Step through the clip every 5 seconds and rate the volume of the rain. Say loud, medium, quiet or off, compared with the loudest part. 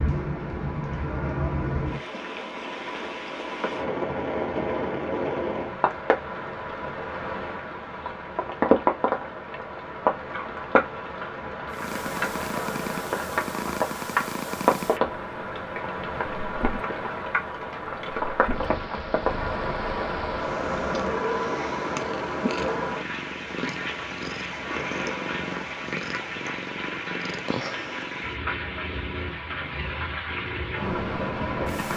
loud, loud, loud, loud, loud, medium, loud.